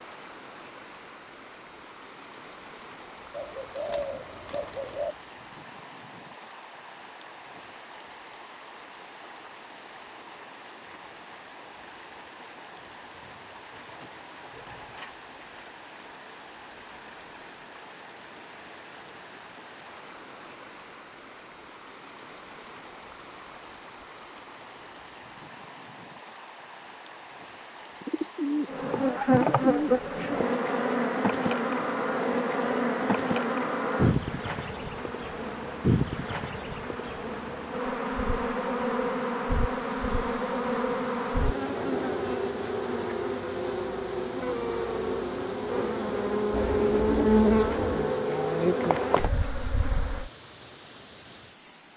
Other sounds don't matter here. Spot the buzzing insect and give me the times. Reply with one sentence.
The buzzing insect can be heard from 28.6 to 50.3 s.